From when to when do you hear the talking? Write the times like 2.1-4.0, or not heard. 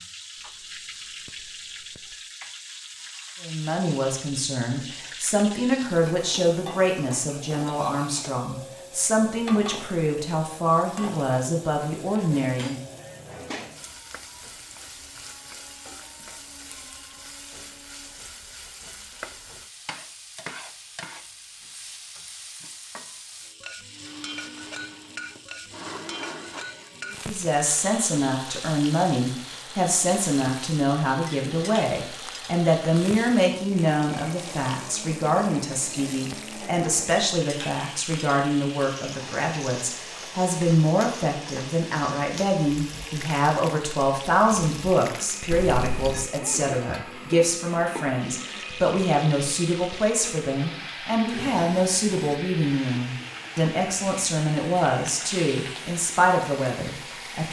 3.4-12.8, 27.2-57.4.